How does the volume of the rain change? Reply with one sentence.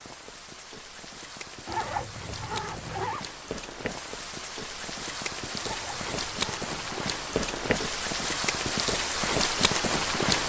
The volume of the rain goes up.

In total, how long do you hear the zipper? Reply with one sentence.
The zipper can be heard for 3 seconds in total.